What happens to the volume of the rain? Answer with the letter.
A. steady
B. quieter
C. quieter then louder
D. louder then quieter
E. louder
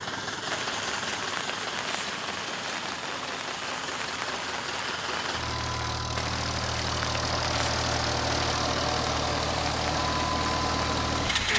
A.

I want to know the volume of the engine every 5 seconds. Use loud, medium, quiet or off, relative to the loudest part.
medium, loud, loud.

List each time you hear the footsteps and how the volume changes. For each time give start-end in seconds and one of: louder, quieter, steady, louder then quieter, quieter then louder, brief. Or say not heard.
not heard.